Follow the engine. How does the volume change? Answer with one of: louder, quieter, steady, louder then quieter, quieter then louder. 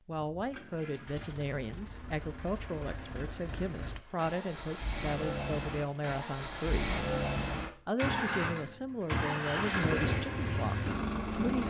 louder.